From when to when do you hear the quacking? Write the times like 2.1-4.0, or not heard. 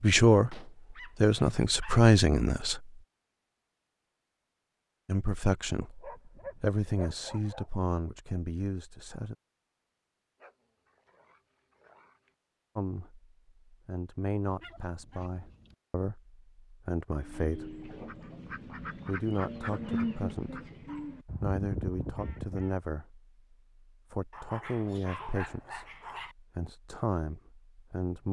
17.1-22.8.